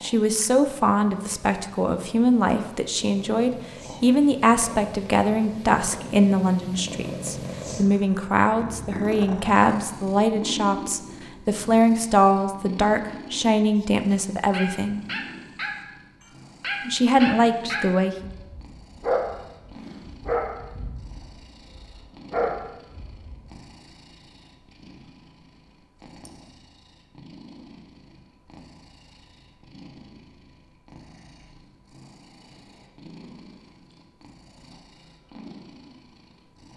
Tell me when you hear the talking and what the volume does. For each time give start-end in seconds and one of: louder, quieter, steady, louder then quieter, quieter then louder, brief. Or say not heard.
0.0-15.0 steady
16.9-18.2 brief.